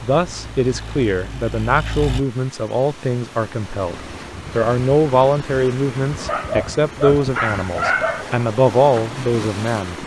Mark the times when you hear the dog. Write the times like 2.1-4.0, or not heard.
6.2-8.2.